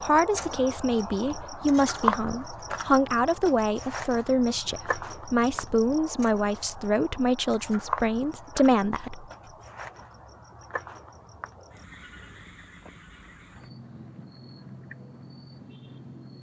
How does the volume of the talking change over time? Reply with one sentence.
The volume of the talking stays about the same.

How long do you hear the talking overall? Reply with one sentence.
You can hear the talking for 9 seconds altogether.